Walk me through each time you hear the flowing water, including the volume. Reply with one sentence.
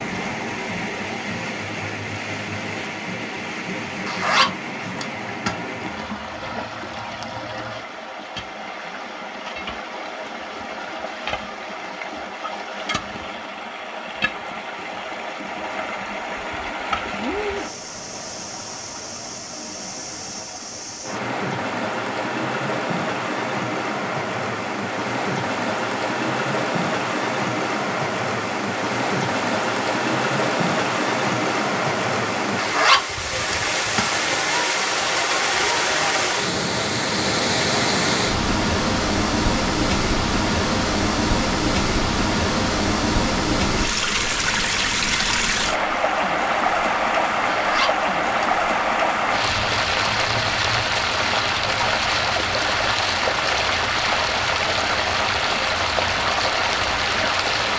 The flowing water can be heard from 0.0 to 57.7 s, getting louder.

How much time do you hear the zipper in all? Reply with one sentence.
You can hear the zipper for 4 seconds altogether.